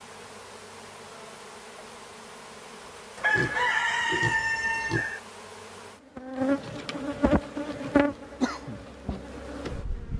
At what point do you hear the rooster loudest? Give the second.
4 s.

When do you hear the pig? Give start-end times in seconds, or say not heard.
3.1-5.1.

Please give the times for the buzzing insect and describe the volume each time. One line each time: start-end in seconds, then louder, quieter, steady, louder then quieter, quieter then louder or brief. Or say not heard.
0.0-10.1 louder.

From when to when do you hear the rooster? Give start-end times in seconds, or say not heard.
3.2-5.2.